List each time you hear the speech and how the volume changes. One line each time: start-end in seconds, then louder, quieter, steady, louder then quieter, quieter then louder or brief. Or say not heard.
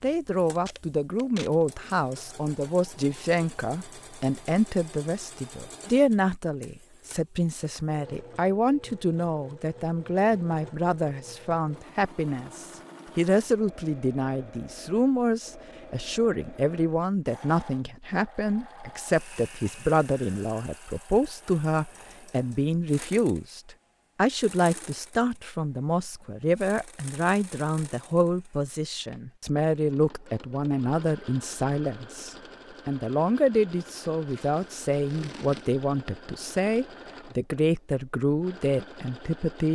0.0-39.7 steady.